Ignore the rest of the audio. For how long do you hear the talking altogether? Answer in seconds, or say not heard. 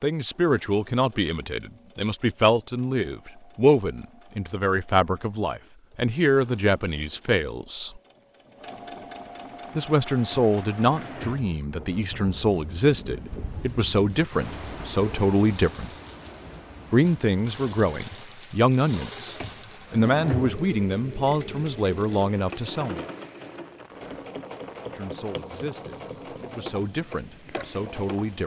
24 s.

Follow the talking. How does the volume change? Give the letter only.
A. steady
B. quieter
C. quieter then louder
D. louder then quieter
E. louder
B.